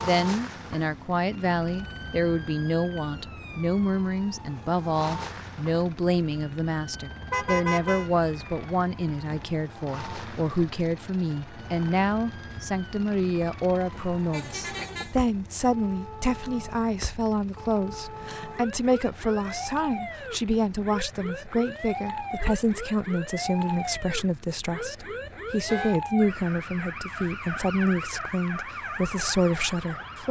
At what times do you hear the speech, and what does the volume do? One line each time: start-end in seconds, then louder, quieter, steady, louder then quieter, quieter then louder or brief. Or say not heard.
0.0-30.2 steady.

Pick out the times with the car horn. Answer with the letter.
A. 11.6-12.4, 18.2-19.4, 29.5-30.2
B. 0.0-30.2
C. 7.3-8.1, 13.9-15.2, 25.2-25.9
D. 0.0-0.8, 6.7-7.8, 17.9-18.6
C.